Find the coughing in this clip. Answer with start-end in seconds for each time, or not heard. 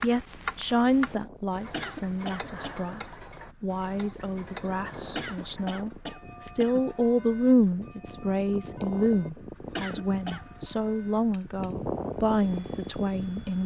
1.6-2.8, 5.0-7.0, 9.7-10.5.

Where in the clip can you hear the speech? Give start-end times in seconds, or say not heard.
0.0-13.6.